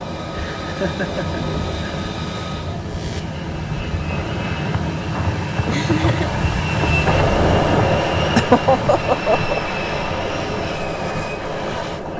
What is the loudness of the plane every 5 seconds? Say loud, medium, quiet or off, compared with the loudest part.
medium, loud, medium.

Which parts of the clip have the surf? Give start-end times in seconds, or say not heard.
0.0-12.1.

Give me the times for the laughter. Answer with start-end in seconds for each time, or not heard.
0.3-2.1, 5.7-6.3, 8.3-9.6.